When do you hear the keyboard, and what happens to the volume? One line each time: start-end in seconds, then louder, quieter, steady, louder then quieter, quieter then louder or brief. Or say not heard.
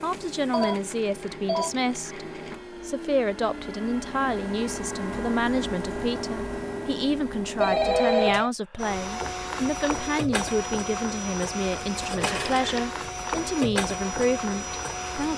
not heard.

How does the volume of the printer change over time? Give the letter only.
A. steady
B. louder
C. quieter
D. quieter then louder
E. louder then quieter
B.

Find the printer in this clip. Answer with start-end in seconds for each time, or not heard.
0.0-15.3.